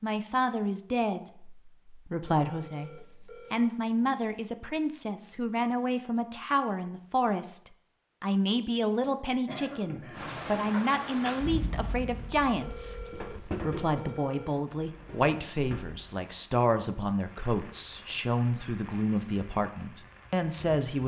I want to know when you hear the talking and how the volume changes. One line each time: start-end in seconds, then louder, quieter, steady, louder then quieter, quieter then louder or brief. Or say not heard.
0.0-21.0 steady.